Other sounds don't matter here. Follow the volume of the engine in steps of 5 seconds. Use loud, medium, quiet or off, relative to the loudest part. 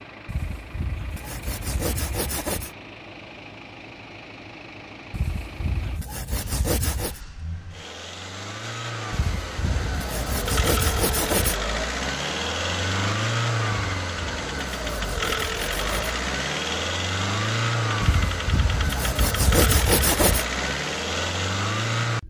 quiet, medium, loud, loud, loud.